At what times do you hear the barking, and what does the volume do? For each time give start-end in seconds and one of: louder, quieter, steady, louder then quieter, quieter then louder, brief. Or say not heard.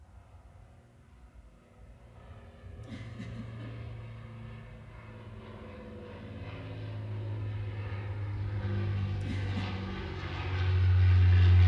not heard.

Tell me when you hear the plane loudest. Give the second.
11 s.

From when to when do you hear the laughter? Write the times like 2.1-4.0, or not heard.
2.7-3.7, 9.1-9.7.